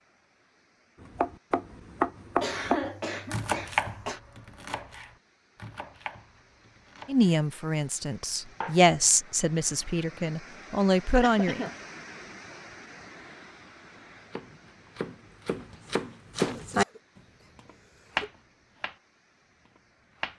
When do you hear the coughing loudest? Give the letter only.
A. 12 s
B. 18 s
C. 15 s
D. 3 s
D.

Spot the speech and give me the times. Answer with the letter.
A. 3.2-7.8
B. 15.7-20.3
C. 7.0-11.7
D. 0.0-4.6
C.